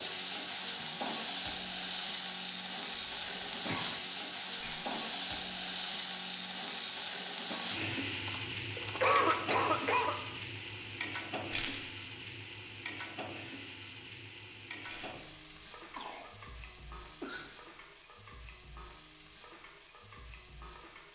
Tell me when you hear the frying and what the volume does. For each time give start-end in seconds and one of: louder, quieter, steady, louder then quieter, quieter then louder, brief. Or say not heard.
0.0-21.1 quieter.